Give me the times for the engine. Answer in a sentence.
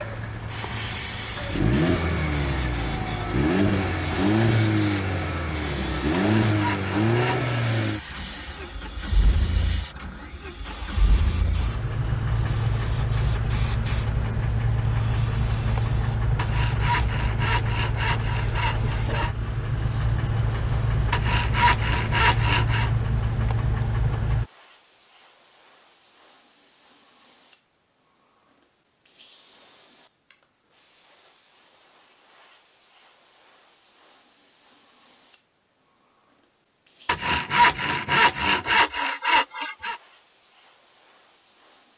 You can hear the engine from 0.0 to 24.4 s.